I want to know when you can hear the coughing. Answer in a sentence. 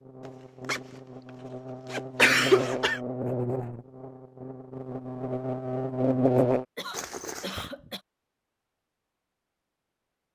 You can hear the coughing from 2.1 to 3.0 s and from 6.8 to 8.0 s.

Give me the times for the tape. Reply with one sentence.
You can't hear the tape here.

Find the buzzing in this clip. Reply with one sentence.
The buzzing can be heard from 0.0 to 6.7 s.